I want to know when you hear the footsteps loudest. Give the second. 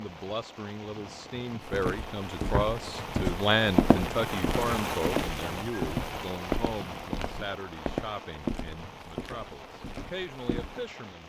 4 s.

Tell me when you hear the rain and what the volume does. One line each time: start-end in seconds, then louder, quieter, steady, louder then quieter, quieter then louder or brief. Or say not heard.
0.0-11.2 louder then quieter.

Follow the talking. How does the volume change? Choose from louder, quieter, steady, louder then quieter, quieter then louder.
louder then quieter.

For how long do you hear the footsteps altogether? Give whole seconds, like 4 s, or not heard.
9 s.